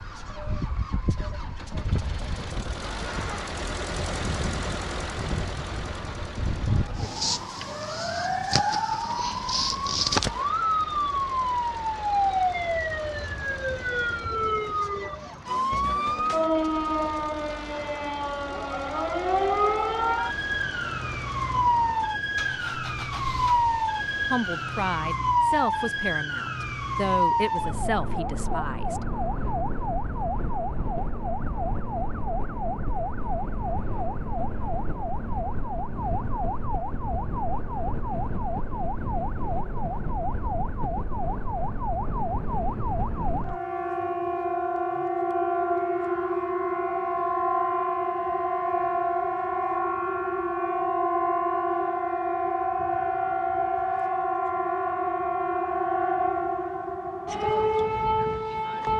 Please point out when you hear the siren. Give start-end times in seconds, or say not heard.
0.0-58.9.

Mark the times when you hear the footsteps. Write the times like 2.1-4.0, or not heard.
not heard.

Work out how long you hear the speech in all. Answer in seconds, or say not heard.
5 s.